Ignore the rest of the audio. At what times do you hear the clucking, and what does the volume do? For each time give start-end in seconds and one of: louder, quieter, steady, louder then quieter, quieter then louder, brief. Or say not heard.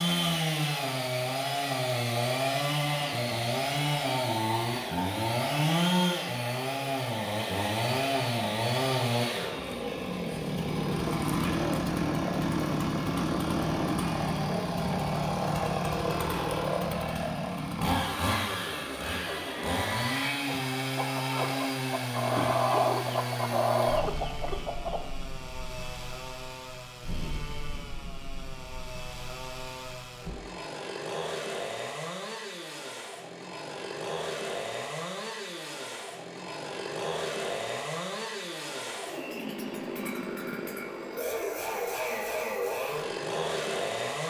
19.1-25.1 louder.